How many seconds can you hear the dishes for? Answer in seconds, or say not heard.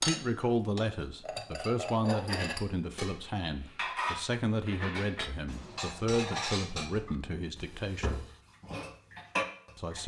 10 s.